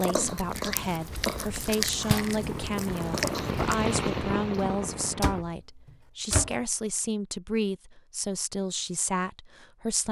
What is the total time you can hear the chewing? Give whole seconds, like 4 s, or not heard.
4 s.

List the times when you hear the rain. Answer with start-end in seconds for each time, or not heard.
0.1-5.5.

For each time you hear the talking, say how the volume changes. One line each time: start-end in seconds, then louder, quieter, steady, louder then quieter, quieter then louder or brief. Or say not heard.
0.0-10.0 steady.